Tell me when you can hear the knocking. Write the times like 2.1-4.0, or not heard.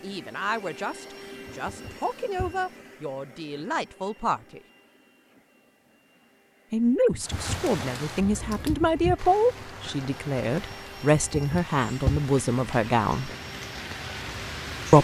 1.4-2.5, 7.1-7.7, 11.3-12.2.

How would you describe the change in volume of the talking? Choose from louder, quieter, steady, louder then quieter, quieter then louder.
louder.